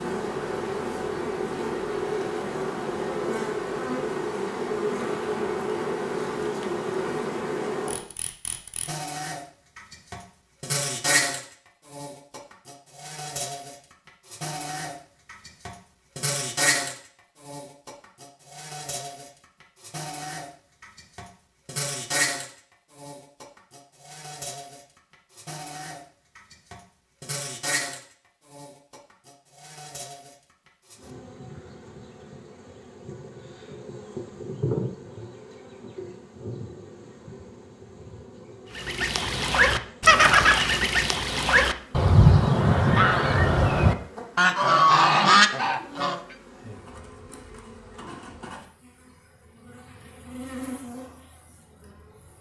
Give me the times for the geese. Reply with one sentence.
You can hear the geese from 38.8 to 46.2 s.